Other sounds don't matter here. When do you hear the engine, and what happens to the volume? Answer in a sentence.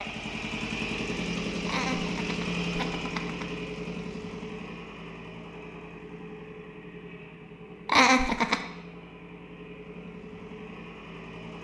You can hear the engine from 0.0 to 11.5 s, getting quieter.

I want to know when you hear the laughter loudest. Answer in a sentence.
The volume of the laughter peaks at 8 seconds.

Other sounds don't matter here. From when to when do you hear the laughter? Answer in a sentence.
The laughter can be heard from 1.6 to 3.5 s and from 7.8 to 8.7 s.